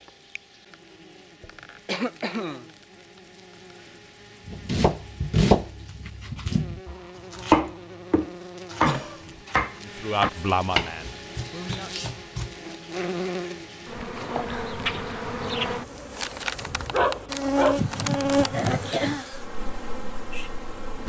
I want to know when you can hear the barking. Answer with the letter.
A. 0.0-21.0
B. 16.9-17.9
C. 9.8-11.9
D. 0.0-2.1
B.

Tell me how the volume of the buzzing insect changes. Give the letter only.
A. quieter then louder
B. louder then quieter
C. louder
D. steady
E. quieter
C.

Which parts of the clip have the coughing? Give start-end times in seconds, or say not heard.
1.4-2.6, 8.8-9.4, 17.8-19.2.